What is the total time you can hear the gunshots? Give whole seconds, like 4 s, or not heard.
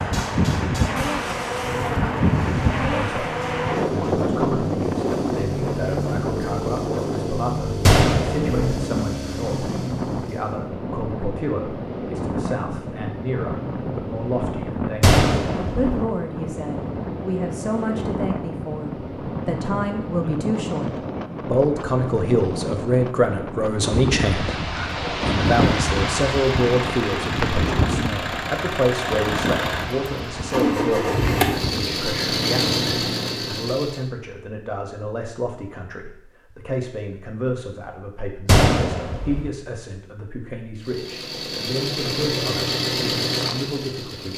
3 s.